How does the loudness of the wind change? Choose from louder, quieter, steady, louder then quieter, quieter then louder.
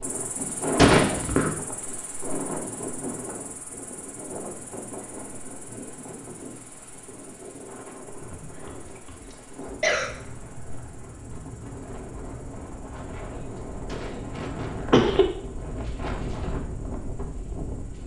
quieter then louder.